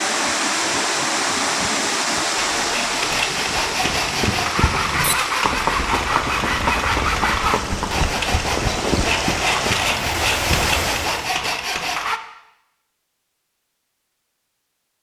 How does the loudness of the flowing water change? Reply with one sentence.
The loudness of the flowing water goes down, then up.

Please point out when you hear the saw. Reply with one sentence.
The saw can be heard from 2.4 to 12.2 s.